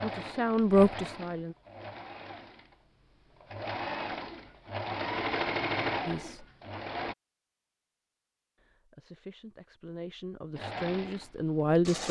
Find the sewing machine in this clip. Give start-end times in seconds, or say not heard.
0.0-7.2, 10.6-12.0.